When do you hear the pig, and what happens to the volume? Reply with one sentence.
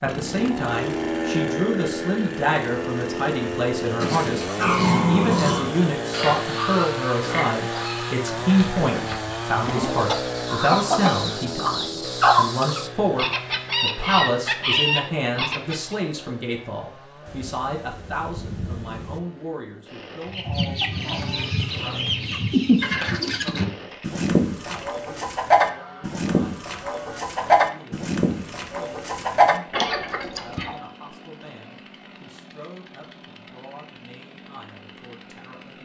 The pig can be heard from 4.0 to 9.7 s, getting quieter.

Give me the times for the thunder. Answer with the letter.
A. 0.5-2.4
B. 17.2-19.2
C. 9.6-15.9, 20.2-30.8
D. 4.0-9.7
B.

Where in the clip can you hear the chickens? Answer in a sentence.
You can hear the chickens from 9.6 to 15.9 s and from 20.2 to 30.8 s.